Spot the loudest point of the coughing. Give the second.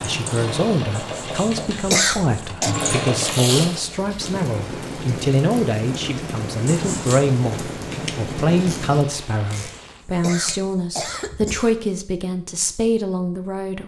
2 s.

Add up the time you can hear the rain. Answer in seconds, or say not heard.
10 s.